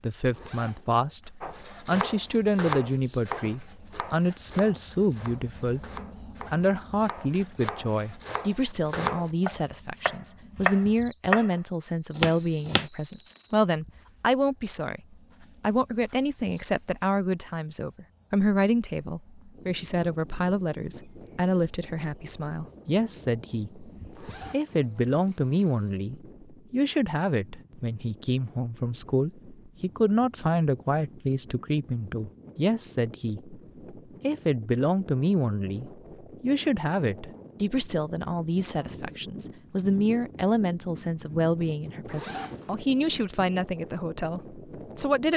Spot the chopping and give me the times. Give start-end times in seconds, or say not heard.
1.4-11.6, 12.2-12.9.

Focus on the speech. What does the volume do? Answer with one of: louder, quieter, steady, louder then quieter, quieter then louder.
steady.